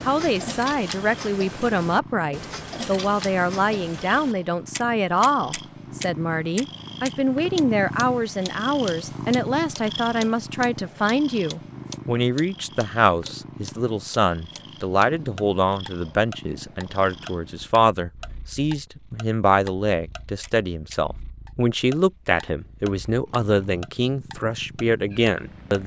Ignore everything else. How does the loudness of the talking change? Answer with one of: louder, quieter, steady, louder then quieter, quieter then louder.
steady.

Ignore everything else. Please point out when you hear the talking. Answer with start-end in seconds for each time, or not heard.
0.0-25.8.